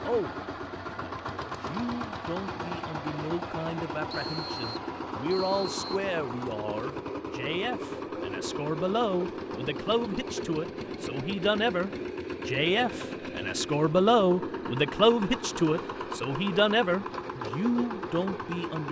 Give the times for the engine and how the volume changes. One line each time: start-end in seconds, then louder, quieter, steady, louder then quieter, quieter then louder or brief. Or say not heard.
0.0-18.8 steady.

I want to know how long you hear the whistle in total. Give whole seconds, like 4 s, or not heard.
2 s.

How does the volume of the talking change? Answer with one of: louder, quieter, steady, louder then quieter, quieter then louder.
louder.